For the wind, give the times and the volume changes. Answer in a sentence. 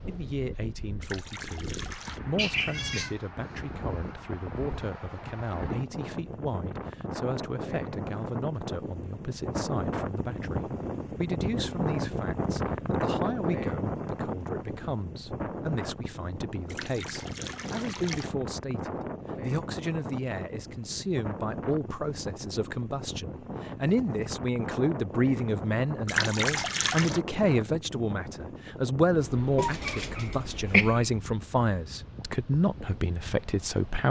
The wind can be heard from 0.0 to 34.0 s, getting louder then quieter.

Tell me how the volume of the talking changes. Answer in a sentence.
The loudness of the talking goes up.